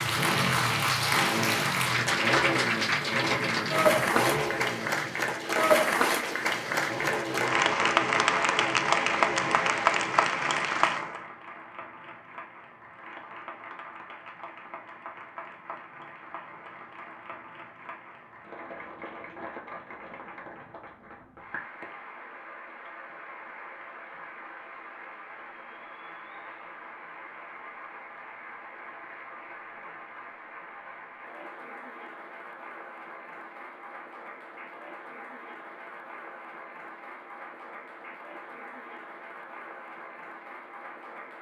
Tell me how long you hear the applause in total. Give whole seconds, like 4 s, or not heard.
41 s.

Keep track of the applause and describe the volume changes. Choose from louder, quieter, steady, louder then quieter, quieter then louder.
quieter.